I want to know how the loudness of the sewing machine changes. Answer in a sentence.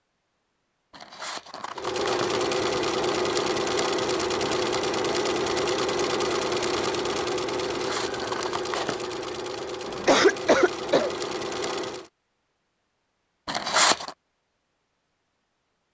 The loudness of the sewing machine goes down.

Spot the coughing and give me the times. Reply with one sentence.
You can hear the coughing from 9.8 to 11.1 s.